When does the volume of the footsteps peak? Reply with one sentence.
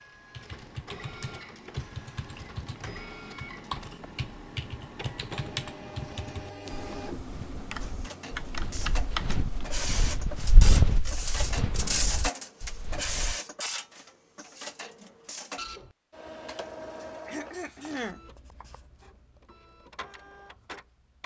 The volume of the footsteps peaks at 11 seconds.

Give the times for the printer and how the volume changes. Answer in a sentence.
The printer can be heard from 0.0 to 21.2 s, getting louder then quieter.